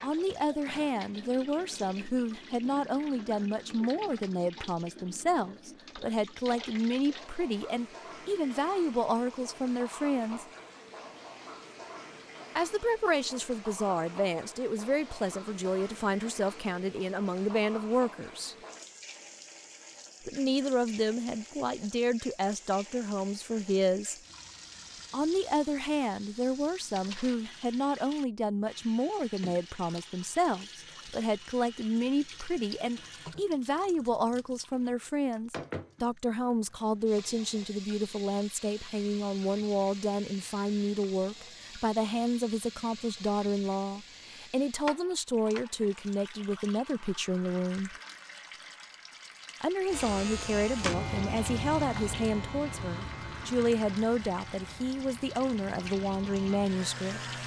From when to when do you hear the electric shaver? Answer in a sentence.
You can hear the electric shaver from 49.9 to 57.4 s.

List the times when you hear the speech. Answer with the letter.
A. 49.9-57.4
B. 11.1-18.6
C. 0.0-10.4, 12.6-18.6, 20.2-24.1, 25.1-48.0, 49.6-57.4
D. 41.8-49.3
C.